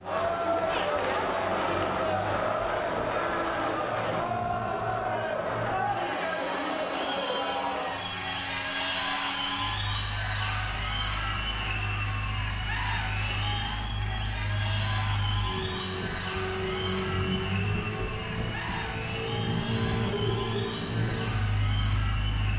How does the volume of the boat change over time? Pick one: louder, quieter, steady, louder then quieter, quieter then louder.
louder.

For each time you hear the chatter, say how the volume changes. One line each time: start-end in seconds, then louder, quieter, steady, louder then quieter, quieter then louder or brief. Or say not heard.
0.0-22.5 quieter.